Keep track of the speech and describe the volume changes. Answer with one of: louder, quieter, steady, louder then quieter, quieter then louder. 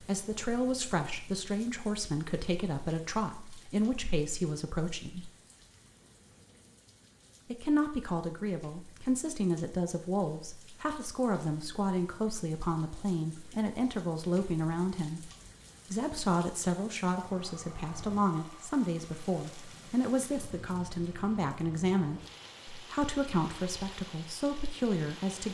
steady.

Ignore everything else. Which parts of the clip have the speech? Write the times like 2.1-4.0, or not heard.
0.1-5.3, 7.5-15.3, 15.9-25.4.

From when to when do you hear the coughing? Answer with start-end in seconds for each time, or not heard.
not heard.